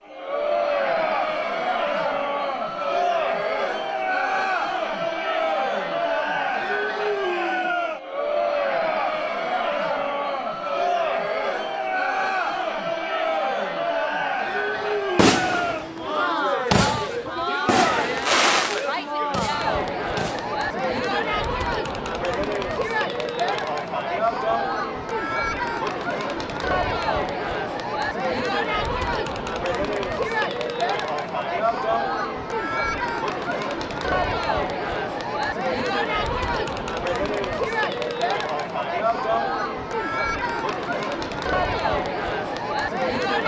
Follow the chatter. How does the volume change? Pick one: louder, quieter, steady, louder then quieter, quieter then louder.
steady.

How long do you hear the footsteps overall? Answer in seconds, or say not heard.
not heard.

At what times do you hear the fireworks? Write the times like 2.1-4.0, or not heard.
14.8-20.6.